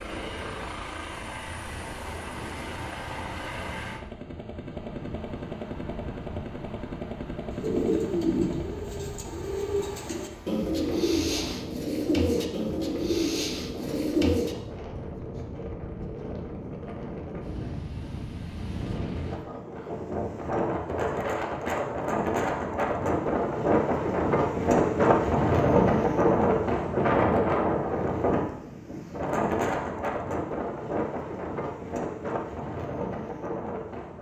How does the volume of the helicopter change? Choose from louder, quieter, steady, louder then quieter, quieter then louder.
steady.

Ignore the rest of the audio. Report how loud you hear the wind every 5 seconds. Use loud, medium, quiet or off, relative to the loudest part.
quiet, quiet, quiet, quiet, loud, loud, medium.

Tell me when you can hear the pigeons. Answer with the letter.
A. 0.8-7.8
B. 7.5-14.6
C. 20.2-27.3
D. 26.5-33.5
B.